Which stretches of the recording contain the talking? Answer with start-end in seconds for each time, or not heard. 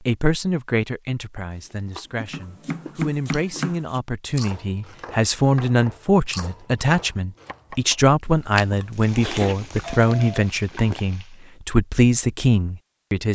0.1-13.2.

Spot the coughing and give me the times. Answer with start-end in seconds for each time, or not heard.
not heard.